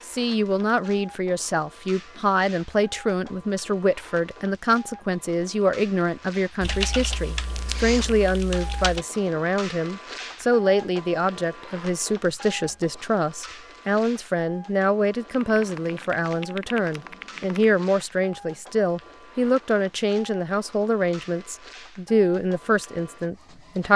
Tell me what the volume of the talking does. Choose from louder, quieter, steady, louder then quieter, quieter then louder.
steady.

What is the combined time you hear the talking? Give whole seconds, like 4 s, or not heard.
24 s.